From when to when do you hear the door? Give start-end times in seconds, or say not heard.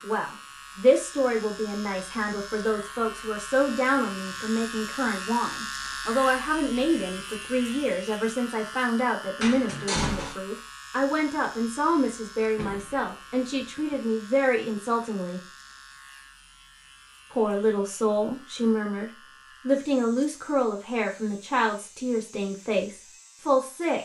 9.4-10.3, 12.6-14.1.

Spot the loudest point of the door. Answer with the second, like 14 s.
10 s.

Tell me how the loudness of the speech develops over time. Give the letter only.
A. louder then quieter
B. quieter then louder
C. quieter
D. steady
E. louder
D.